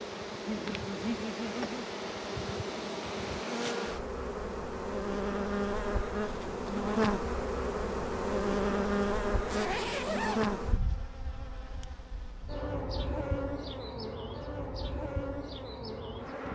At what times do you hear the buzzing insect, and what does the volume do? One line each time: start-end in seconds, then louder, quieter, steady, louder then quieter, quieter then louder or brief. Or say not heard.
0.0-16.4 louder then quieter.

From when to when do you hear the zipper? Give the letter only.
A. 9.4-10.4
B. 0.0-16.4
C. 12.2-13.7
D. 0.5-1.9
A.